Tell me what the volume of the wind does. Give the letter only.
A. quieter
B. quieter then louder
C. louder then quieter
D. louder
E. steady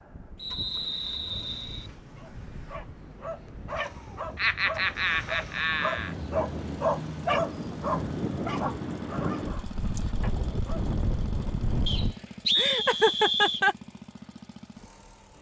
D.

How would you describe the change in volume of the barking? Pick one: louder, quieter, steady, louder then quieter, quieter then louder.
louder then quieter.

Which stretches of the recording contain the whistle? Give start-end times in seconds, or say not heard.
0.3-1.9, 11.8-13.6.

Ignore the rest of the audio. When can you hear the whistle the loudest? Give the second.
13 s.